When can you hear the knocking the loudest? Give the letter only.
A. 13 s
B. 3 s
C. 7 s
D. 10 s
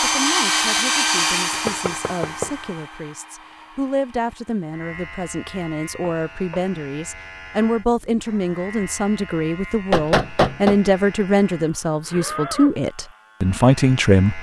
D.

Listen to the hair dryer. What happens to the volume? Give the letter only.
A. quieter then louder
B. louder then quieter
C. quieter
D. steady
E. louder
C.